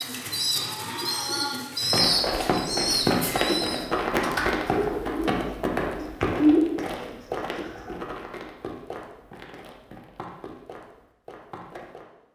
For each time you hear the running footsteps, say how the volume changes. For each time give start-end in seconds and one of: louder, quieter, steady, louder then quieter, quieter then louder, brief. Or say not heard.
1.9-12.1 quieter.